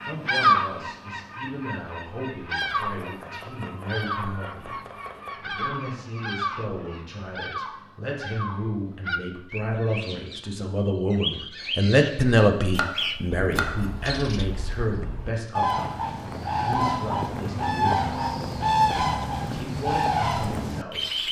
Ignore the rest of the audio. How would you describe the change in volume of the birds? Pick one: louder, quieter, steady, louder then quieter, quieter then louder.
quieter then louder.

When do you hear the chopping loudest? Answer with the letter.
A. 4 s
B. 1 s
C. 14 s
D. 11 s
C.